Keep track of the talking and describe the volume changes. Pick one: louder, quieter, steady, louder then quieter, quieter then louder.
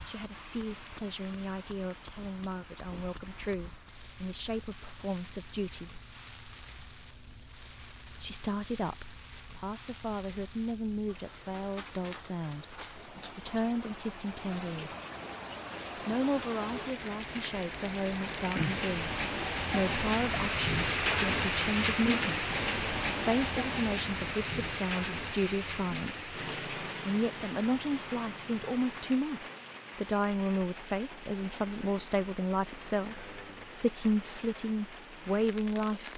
louder.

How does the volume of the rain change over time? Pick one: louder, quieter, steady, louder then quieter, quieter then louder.
louder then quieter.